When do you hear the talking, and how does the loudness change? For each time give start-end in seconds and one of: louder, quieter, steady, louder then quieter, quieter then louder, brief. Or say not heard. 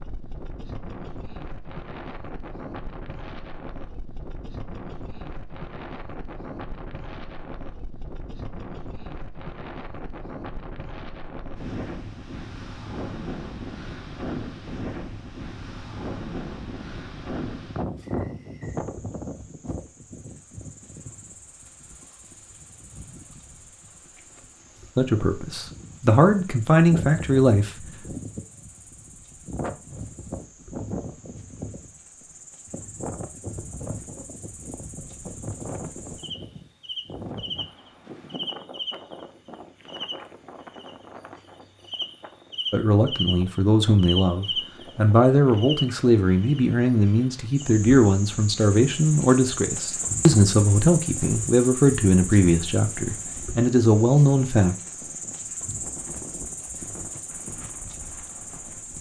24.9-27.7 brief
42.7-54.8 steady.